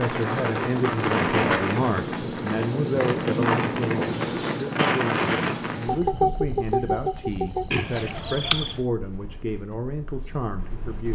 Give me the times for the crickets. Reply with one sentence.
The crickets can be heard from 0.0 to 8.8 s.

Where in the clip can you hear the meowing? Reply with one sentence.
The meowing can't be heard in this clip.